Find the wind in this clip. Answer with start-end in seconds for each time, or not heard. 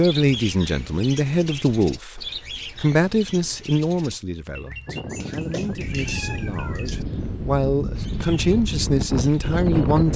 4.8-10.1.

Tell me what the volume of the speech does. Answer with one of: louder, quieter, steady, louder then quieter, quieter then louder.
quieter then louder.